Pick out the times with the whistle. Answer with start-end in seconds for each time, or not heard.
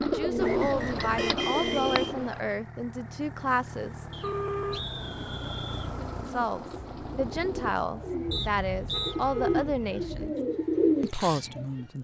0.4-2.4, 4.1-6.0, 8.3-9.2.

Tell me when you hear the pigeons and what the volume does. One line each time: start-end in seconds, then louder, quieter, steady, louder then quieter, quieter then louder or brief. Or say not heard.
0.0-2.4 brief
5.0-11.7 louder.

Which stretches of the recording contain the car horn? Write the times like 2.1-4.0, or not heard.
0.3-2.1, 4.2-4.8, 8.2-10.3.